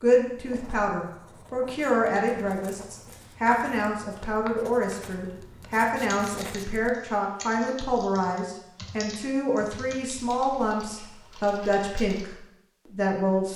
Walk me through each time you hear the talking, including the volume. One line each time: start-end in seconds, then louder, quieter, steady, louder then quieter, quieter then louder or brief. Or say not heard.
0.0-13.5 steady.